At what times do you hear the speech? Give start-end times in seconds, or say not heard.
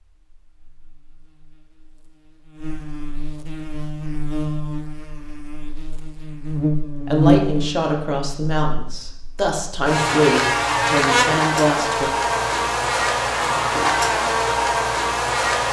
6.8-12.1.